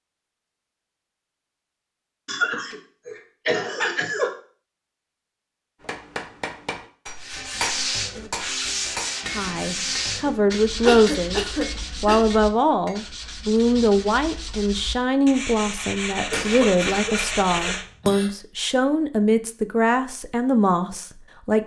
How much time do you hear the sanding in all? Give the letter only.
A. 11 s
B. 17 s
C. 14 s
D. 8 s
A.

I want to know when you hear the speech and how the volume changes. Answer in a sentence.
You can hear the speech briefly from 9.3 to 11.4 s; and from 12.0 to 21.6 s, at a steady volume.